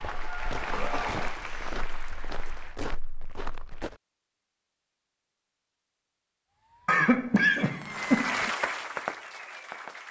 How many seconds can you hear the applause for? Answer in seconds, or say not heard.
5 s.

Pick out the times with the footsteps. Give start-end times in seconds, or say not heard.
0.0-4.0.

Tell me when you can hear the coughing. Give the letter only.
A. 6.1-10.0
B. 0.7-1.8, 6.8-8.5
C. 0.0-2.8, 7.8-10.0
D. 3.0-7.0
B.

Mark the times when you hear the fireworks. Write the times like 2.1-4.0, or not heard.
6.5-10.0.